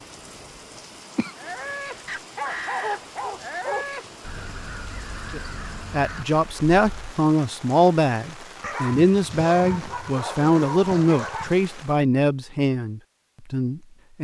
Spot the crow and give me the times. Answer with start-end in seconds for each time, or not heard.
1.4-7.2.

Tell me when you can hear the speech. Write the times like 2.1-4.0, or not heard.
5.3-14.1.